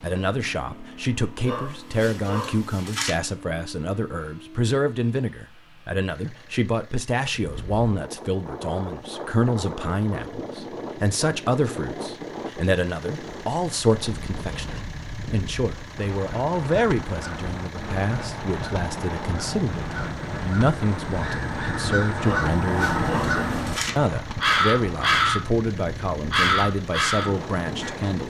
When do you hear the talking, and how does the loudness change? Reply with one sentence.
You can hear the talking from 0.0 to 28.2 s, at a steady volume.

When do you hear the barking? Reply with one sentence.
You can hear the barking from 1.4 to 3.1 s and from 22.2 to 23.9 s.